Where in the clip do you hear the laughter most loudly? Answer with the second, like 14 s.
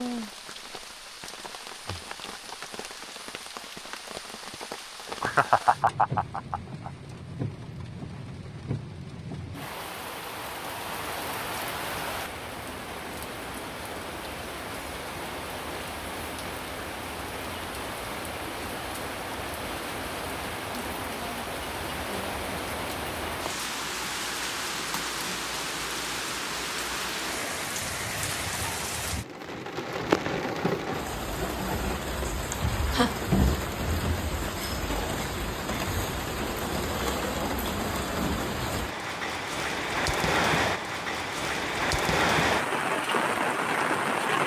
6 s.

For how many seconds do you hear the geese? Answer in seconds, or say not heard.
not heard.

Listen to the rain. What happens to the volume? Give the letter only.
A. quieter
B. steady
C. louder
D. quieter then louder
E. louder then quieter
C.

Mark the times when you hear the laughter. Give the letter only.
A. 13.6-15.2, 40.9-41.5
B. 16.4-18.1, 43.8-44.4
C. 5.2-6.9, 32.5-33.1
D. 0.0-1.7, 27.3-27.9
C.